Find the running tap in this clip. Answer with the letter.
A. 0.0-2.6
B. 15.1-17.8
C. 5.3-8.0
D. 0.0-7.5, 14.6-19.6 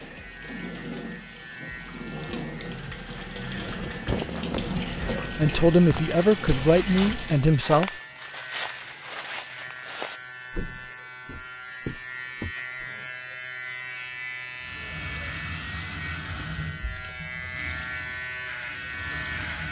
D.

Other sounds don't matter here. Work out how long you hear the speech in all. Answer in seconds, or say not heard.
3 s.